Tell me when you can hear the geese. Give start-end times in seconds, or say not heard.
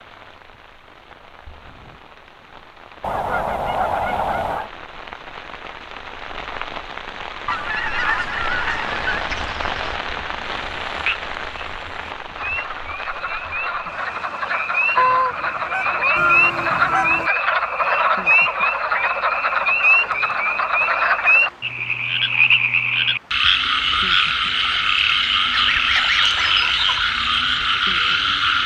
3.0-4.7, 7.5-9.2, 14.9-17.2, 25.5-27.0.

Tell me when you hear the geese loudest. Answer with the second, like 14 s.
15 s.